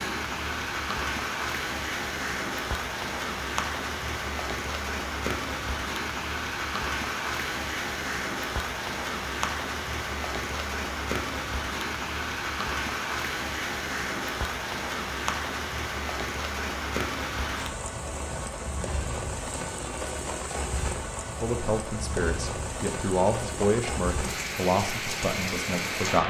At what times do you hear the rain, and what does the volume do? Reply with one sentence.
The rain can be heard from 0.0 to 26.2 s, at a steady volume.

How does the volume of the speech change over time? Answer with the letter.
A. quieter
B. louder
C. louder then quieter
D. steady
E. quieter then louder
C.